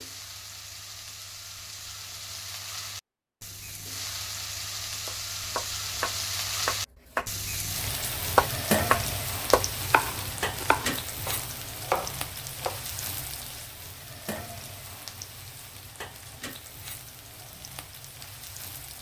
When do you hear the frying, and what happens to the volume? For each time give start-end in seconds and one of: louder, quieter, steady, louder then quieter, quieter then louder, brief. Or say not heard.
0.0-18.9 louder then quieter.